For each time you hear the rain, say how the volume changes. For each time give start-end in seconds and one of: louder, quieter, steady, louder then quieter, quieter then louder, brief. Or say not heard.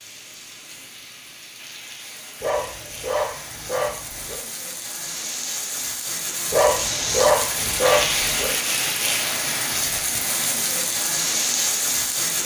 0.0-12.3 louder.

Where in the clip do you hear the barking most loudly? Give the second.
7 s.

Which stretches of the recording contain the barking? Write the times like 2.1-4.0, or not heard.
2.4-4.4, 6.5-8.5.